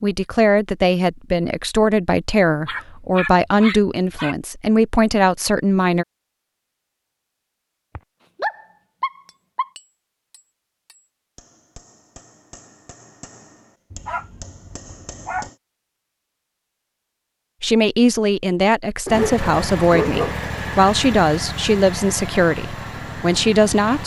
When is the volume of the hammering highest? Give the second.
15 s.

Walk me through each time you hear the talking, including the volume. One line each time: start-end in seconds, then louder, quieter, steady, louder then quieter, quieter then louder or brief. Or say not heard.
0.0-6.0 steady
17.6-24.0 steady.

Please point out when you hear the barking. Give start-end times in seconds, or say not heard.
2.6-4.3, 8.0-9.7, 13.9-15.5, 19.1-20.5.